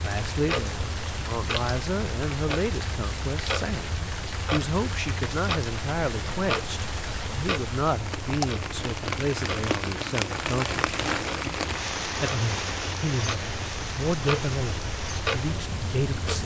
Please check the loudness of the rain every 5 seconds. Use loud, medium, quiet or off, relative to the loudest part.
medium, loud, loud, medium.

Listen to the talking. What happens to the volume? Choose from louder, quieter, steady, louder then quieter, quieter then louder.
steady.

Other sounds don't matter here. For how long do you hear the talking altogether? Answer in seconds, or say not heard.
15 s.